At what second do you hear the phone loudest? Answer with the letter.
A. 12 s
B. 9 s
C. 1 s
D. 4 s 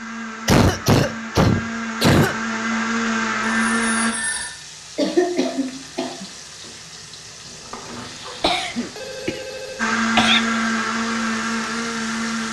D.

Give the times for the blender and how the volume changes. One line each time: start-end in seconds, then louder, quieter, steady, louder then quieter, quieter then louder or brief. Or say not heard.
0.0-4.2 louder
9.8-12.4 brief.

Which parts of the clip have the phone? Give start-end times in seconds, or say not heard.
3.5-4.5, 7.5-9.9.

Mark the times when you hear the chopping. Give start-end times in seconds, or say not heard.
not heard.